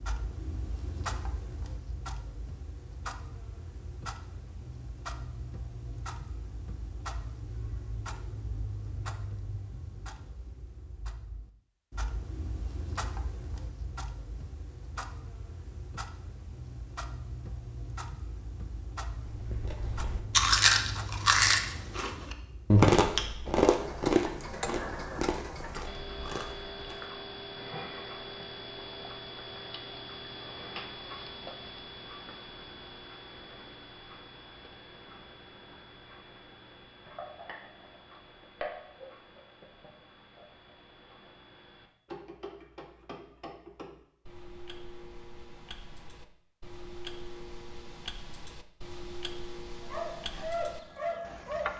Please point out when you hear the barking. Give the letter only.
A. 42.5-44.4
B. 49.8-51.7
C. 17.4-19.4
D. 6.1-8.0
B.